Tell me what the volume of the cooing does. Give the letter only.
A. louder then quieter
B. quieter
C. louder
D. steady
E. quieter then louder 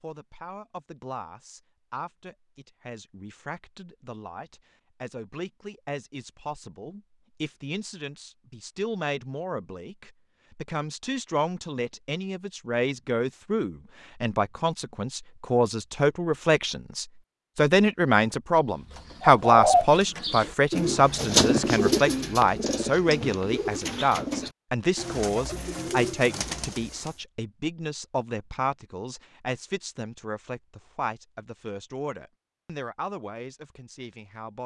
B.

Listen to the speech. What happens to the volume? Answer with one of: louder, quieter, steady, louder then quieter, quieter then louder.
louder then quieter.